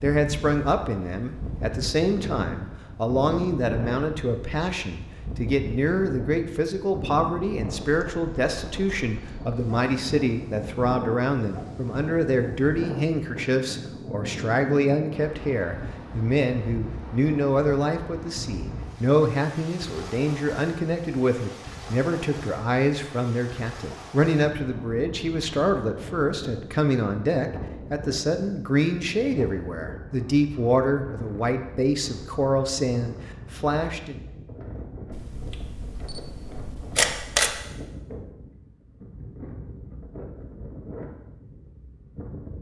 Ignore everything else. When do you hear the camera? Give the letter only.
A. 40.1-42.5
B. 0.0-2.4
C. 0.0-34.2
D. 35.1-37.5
D.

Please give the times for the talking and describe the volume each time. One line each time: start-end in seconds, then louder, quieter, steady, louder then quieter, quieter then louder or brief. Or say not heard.
0.0-34.2 steady.